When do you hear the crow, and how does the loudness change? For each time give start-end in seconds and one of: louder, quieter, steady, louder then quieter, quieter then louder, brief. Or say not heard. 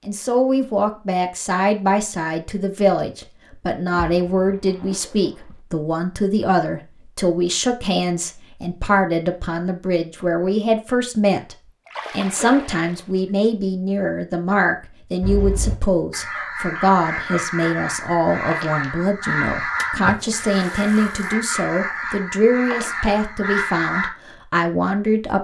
15.2-24.1 steady.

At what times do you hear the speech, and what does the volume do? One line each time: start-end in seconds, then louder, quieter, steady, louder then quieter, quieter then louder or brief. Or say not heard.
0.1-25.3 steady.